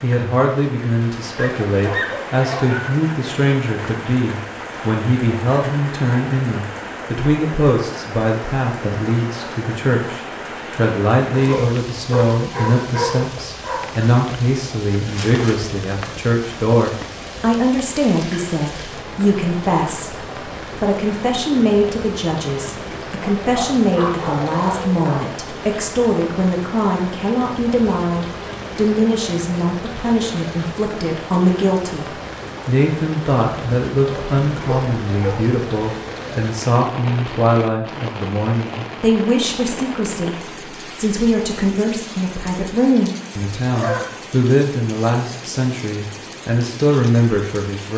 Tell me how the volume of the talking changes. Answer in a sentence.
The loudness of the talking stays about the same.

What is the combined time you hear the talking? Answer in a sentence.
The talking can be heard for 48 seconds in total.